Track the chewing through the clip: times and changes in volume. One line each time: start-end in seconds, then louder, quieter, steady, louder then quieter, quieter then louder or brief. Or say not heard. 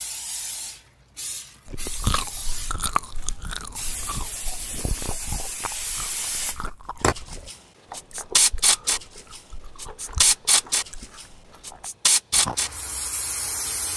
1.6-12.6 quieter.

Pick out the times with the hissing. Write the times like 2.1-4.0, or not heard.
0.0-13.9.